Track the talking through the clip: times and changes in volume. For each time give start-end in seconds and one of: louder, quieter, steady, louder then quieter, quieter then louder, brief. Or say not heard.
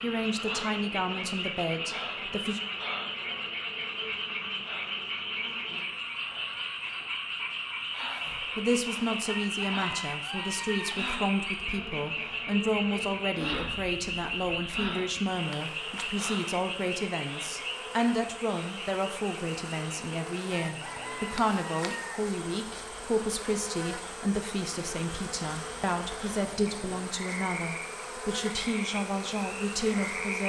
0.0-2.6 brief
8.4-30.4 steady.